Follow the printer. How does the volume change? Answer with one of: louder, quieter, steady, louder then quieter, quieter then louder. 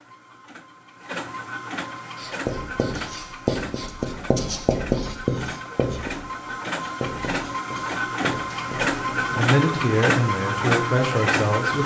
louder.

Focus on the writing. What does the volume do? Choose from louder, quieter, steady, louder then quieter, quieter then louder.
quieter.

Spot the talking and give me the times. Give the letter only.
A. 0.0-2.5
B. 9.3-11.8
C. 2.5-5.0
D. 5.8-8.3
B.